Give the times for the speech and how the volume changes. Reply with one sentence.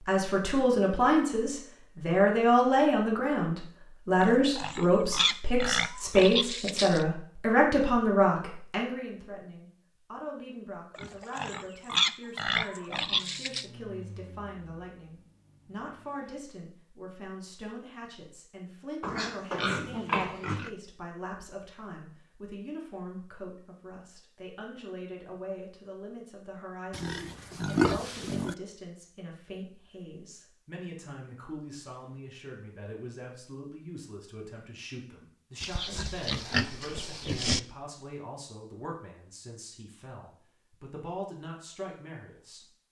You can hear the speech from 0.1 to 42.8 s, getting quieter.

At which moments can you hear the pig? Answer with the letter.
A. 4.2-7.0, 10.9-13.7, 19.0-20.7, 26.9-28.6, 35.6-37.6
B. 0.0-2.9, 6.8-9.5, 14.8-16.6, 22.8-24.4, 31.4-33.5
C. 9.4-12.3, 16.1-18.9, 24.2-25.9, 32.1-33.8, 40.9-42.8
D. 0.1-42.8
A.